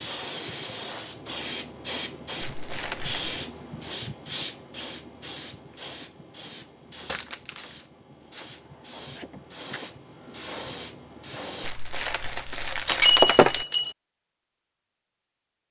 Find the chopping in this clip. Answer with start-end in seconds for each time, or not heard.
not heard.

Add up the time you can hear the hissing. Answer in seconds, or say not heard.
12 s.